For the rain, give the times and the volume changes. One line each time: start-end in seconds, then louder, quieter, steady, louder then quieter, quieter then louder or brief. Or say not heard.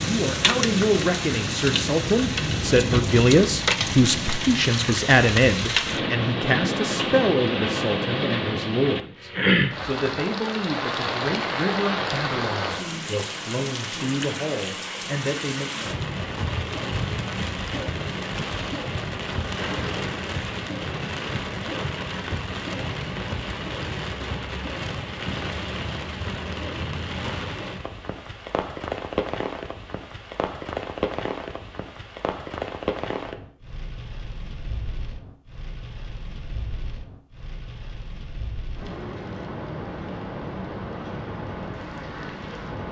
0.0-42.8 quieter.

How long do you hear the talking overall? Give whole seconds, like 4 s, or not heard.
16 s.